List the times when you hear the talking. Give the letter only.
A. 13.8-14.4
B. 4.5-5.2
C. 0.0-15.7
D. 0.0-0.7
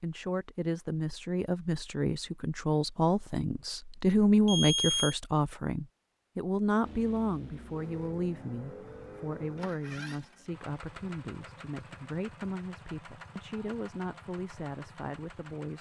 C.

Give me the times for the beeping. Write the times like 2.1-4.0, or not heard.
4.5-5.2.